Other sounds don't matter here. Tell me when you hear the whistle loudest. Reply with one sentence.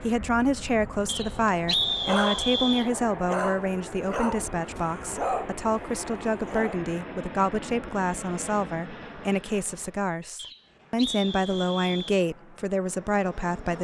The volume of the whistle peaks at 2 seconds.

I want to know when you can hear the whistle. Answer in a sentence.
The whistle can be heard from 1.1 to 2.9 s and from 10.3 to 12.2 s.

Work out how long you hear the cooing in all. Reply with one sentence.
The cooing can't be heard in this clip.